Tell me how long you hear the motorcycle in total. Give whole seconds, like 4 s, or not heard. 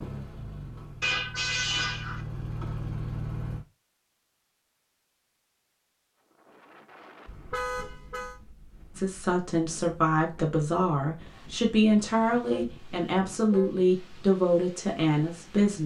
4 s.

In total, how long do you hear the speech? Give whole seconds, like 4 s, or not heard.
7 s.